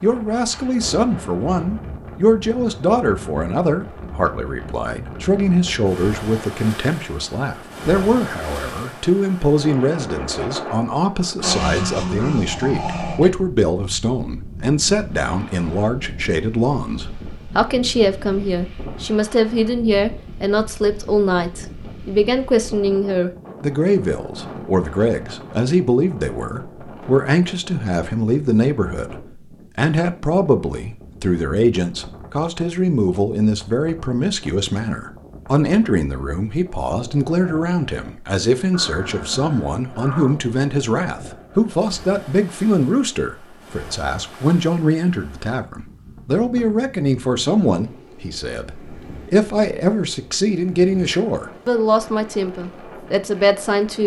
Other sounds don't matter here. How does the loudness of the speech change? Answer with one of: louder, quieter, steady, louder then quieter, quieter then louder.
steady.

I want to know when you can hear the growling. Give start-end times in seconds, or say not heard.
11.4-13.3, 38.7-40.5.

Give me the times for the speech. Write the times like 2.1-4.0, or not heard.
0.0-29.1, 29.8-54.0.